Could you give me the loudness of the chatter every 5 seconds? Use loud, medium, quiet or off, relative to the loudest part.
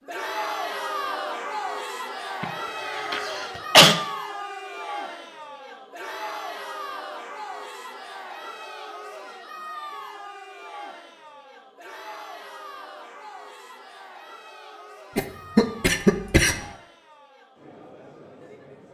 loud, medium, medium, quiet.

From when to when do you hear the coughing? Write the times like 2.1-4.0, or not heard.
2.4-4.0, 15.2-16.6.